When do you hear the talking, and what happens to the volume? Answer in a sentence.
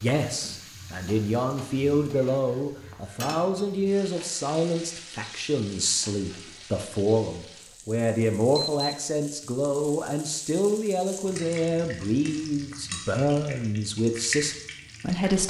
The talking can be heard from 0.0 to 15.4 s, at a steady volume.